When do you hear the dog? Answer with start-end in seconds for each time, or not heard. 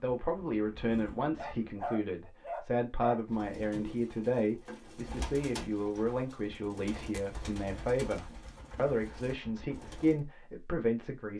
1.4-3.2.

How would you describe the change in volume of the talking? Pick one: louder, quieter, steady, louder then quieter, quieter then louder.
steady.